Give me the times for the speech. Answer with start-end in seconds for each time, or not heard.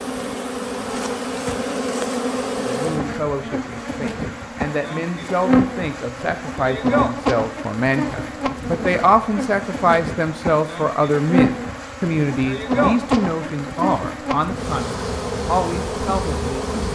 2.6-16.9.